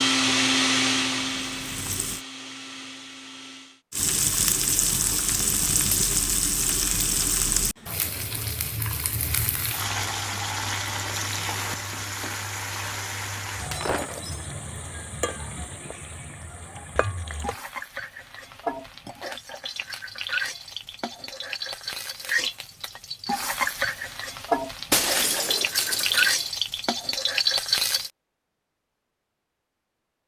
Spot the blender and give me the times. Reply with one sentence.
The blender can be heard from 0.0 to 3.8 s.